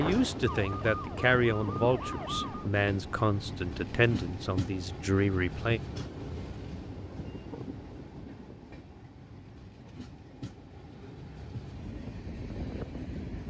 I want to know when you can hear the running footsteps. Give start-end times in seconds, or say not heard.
not heard.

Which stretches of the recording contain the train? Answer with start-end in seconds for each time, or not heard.
0.0-13.4.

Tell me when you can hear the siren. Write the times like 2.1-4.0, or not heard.
0.0-2.6.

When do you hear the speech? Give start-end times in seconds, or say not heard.
0.0-5.8.